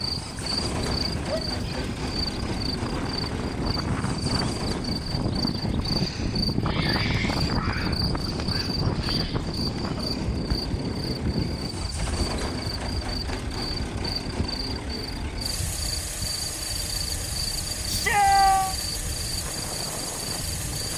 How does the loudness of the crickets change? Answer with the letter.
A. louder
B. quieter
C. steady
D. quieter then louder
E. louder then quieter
C.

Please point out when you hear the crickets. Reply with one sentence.
The crickets can be heard from 0.0 to 20.9 s.